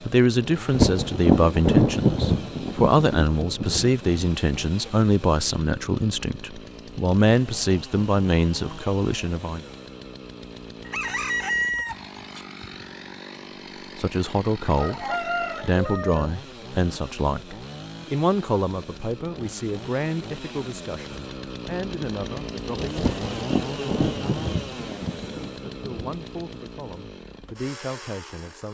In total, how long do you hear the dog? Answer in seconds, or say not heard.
not heard.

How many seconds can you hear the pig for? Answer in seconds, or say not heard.
not heard.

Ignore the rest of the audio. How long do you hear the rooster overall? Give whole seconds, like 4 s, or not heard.
3 s.